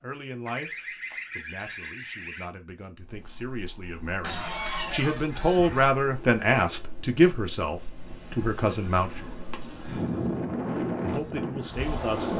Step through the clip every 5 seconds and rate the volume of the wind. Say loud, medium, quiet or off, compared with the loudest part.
quiet, quiet, loud.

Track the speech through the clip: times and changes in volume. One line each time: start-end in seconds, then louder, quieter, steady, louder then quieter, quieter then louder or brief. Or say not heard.
0.0-9.3 louder then quieter
11.0-12.3 brief.